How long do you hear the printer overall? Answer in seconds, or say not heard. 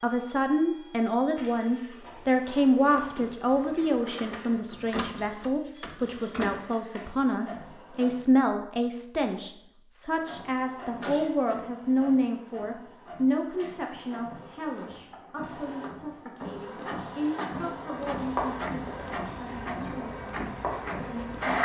20 s.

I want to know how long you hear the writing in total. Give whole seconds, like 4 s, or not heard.
4 s.